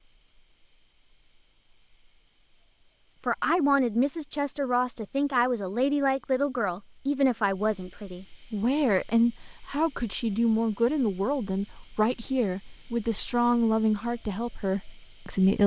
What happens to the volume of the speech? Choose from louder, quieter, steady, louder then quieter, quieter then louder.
steady.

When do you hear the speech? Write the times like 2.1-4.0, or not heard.
3.2-15.6.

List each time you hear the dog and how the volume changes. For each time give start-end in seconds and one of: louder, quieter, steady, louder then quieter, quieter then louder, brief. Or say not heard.
not heard.